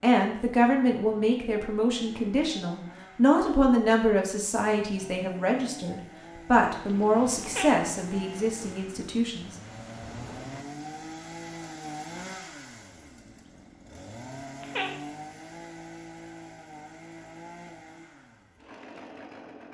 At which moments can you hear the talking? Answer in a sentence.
You can hear the talking from 0.0 to 9.6 s.